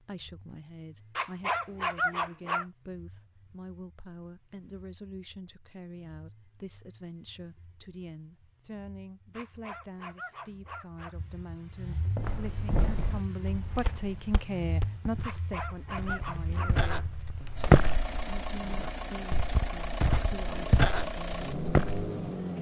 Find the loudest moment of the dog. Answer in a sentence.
The volume of the dog peaks at 2 seconds.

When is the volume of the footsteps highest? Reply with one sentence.
The loudest moment of the footsteps is at 18 seconds.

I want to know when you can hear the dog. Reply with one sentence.
The dog can be heard from 1.1 to 2.6 s, from 9.3 to 11.2 s and from 15.2 to 17.1 s.